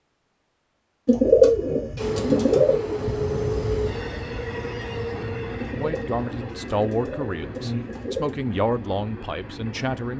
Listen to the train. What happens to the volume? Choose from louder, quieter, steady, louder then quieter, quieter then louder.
quieter.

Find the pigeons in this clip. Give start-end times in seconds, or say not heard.
1.1-2.9, 5.6-8.4.